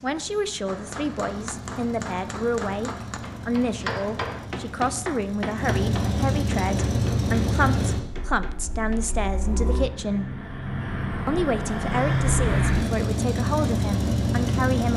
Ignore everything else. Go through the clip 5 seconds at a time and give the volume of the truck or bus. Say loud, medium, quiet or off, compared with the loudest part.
quiet, loud, loud.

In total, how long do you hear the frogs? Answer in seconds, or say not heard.
not heard.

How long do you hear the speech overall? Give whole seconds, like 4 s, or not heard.
14 s.